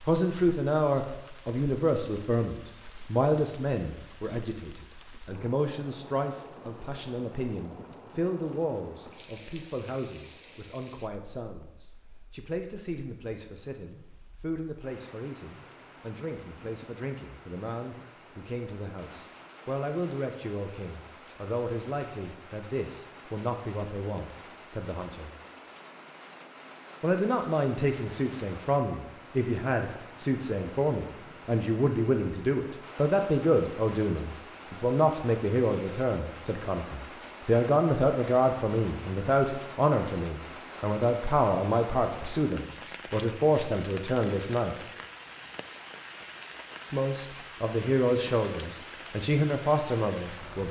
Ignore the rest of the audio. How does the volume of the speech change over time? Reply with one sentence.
The volume of the speech goes down, then up.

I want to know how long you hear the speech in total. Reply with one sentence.
The speech can be heard for 47 seconds in total.